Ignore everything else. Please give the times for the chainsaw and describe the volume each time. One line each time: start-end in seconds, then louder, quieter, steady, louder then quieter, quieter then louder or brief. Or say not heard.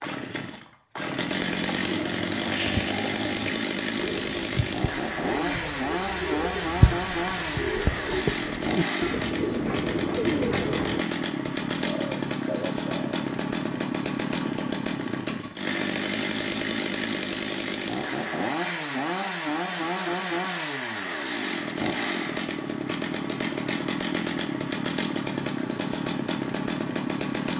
0.0-27.5 steady.